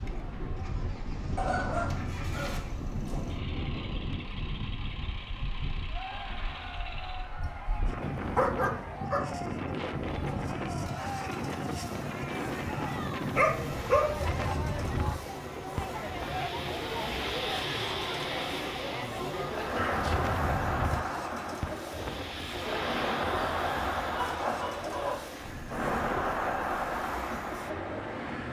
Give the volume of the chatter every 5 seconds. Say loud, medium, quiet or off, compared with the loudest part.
quiet, medium, medium, loud, loud, loud.